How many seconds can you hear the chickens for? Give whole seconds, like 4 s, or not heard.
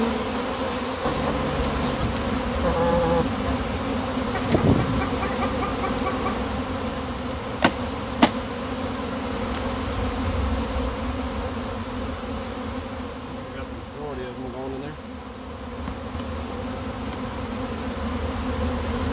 5 s.